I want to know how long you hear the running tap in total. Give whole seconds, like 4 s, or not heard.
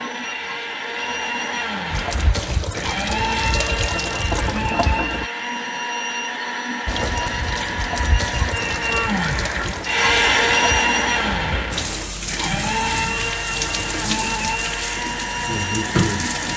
13 s.